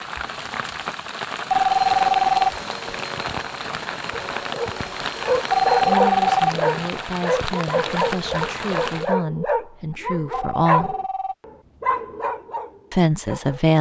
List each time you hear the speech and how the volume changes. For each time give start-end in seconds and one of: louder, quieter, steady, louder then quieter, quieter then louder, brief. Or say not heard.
5.8-10.9 steady
12.9-13.7 brief.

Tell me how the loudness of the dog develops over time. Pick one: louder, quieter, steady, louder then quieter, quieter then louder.
steady.